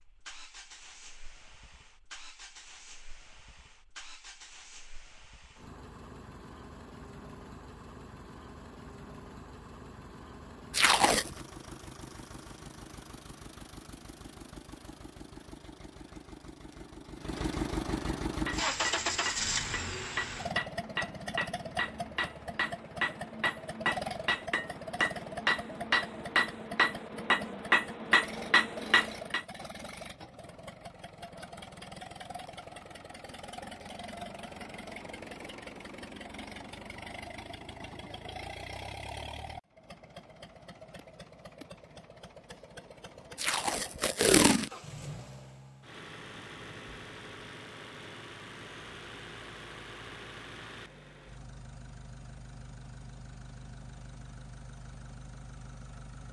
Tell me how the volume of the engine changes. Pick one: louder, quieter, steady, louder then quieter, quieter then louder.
louder then quieter.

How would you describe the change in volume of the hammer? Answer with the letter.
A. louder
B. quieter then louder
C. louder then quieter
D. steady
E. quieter
A.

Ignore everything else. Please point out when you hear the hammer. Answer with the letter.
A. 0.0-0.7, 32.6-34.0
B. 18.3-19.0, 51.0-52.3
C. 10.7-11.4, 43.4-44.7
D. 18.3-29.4
D.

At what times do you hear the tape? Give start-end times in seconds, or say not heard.
10.7-11.4, 43.4-44.7.